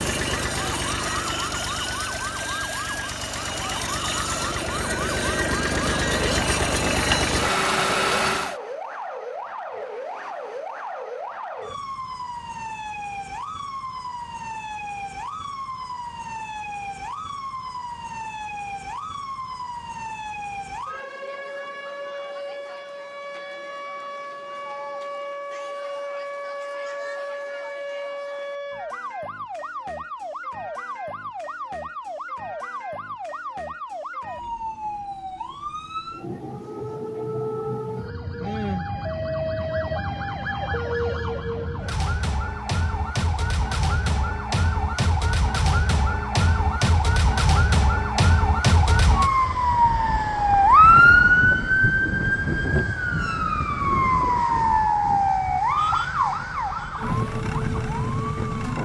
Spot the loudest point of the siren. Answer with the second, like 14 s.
51 s.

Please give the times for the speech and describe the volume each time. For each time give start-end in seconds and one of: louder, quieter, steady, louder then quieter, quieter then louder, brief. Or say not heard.
not heard.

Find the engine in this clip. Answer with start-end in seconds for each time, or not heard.
0.0-8.6.